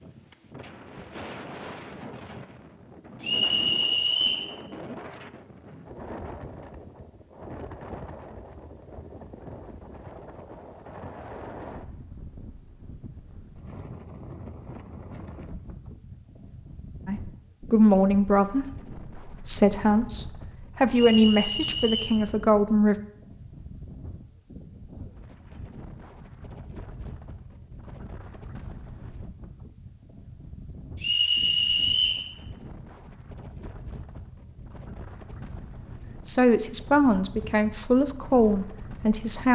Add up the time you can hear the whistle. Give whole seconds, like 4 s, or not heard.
4 s.